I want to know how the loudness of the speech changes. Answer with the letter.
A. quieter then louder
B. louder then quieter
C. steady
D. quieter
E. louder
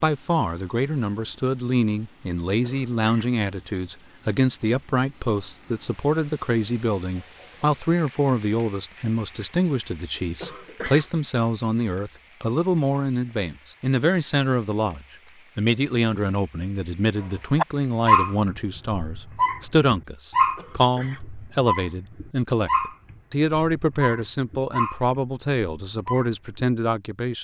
C.